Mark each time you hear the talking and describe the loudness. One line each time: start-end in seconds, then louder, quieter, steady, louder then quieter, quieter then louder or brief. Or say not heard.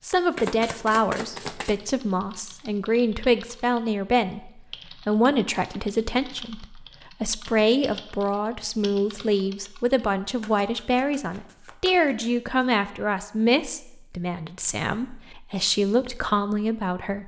0.0-17.2 steady.